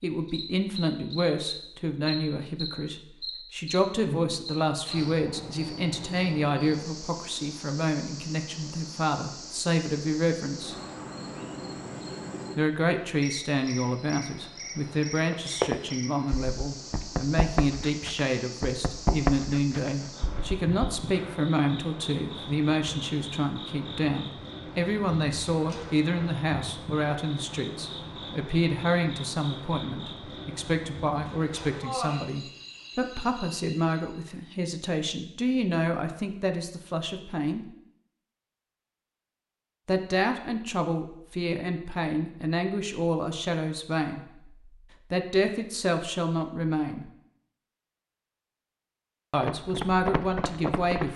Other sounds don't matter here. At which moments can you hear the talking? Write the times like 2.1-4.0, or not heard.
0.0-10.8, 12.6-37.6, 39.9-47.1, 49.3-51.1.